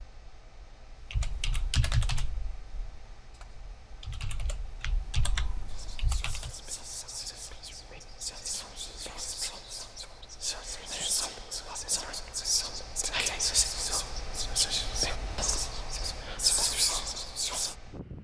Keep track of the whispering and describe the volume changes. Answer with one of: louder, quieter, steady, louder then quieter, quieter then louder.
louder.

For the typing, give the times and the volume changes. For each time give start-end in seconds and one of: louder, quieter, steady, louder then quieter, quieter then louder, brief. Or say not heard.
1.1-6.5 quieter then louder.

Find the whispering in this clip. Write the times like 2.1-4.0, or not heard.
5.7-17.8.